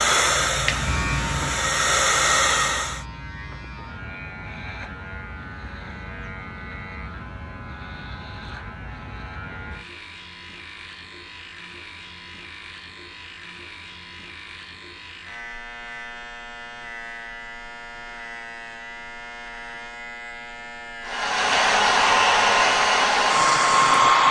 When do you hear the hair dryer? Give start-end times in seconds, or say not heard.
0.0-3.0, 21.1-24.2.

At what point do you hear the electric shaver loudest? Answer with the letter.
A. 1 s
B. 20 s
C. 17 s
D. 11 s
A.